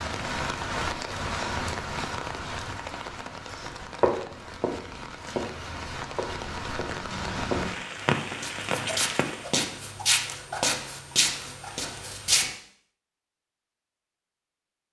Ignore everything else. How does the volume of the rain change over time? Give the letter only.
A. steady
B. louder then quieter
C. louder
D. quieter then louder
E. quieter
D.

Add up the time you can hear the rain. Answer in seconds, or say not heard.
10 s.